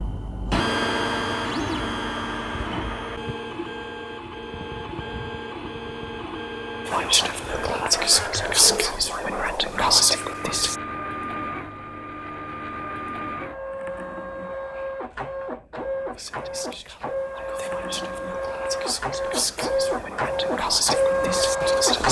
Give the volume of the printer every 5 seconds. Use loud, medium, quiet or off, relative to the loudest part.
medium, medium, medium, medium, loud.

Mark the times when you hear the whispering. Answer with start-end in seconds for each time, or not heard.
6.8-10.8, 16.1-22.0.